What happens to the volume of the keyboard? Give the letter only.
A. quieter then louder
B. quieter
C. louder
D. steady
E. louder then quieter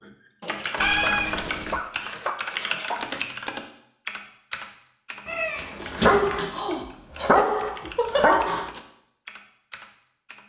B.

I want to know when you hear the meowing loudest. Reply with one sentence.
The volume of the meowing peaks at 1 second.